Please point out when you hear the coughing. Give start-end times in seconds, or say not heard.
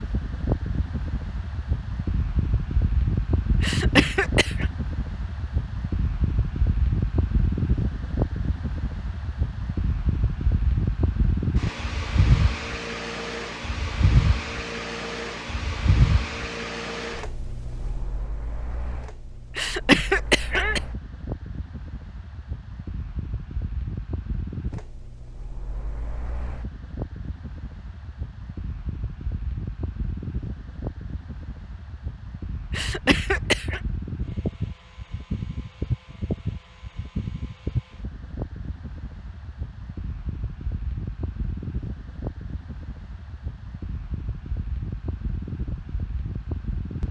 3.6-4.7, 19.6-20.8, 32.7-33.8.